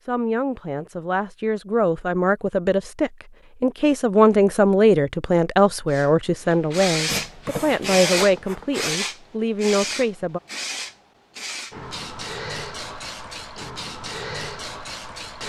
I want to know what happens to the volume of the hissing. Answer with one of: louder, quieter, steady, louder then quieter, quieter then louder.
quieter.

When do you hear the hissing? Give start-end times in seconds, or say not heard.
5.9-15.4.